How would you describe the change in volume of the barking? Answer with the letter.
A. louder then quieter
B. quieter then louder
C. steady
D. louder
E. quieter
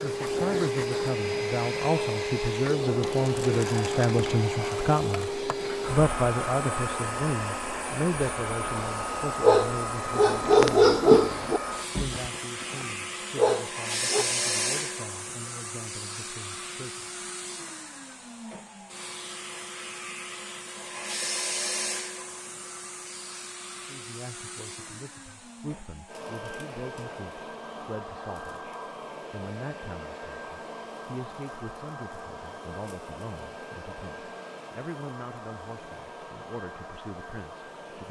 B.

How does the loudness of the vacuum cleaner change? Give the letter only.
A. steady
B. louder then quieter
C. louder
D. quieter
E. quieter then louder
D.